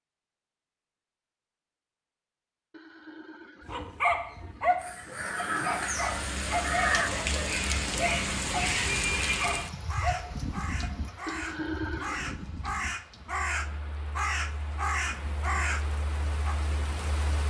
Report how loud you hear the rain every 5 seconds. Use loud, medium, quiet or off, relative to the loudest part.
off, loud, medium, medium.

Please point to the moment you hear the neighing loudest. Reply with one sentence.
The loudest moment of the neighing is at 12 seconds.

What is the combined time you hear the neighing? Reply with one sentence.
You can hear the neighing for 3 seconds altogether.